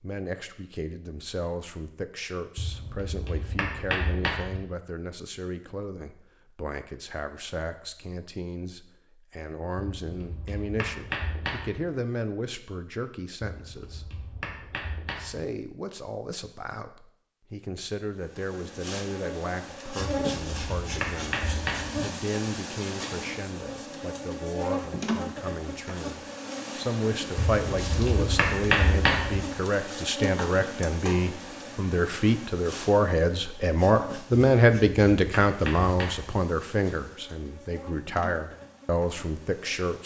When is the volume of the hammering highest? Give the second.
29 s.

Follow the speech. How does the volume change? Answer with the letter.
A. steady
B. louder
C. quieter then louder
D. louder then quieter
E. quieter
B.